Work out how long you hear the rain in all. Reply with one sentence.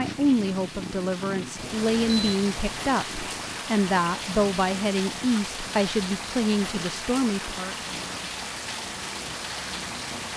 The rain can be heard for 10 seconds in total.